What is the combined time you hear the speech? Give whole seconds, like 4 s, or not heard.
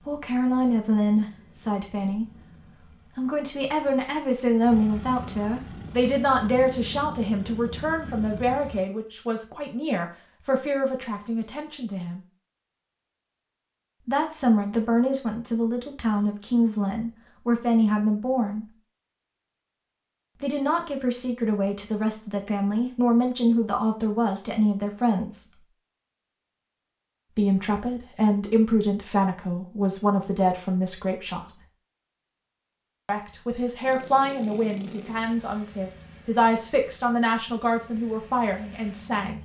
32 s.